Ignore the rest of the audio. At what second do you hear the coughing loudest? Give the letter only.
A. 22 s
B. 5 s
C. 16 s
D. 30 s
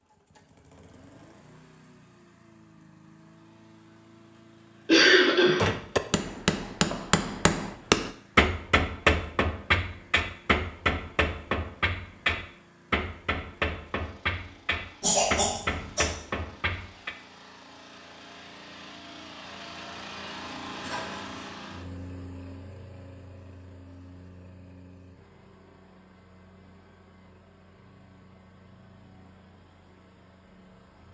B.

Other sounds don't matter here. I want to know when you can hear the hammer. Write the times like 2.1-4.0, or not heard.
5.5-17.1.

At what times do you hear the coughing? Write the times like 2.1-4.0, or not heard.
4.8-5.7, 15.0-16.1, 20.8-21.4.